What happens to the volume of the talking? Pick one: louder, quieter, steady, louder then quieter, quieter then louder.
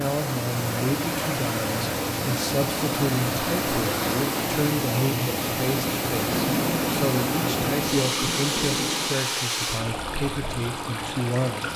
steady.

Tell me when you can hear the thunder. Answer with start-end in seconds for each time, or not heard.
6.3-9.3.